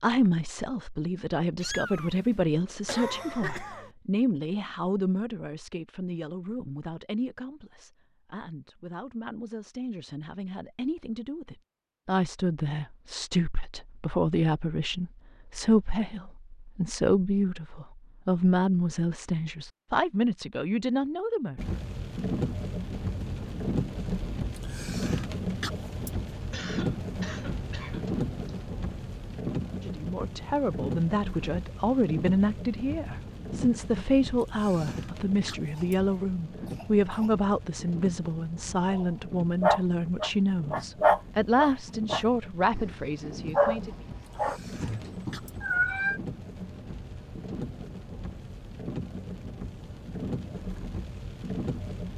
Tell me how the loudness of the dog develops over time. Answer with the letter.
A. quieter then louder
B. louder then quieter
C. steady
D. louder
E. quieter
E.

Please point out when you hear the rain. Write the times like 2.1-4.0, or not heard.
21.6-52.1.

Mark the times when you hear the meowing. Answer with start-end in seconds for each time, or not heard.
1.6-2.4, 44.4-46.2.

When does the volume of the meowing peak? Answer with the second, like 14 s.
46 s.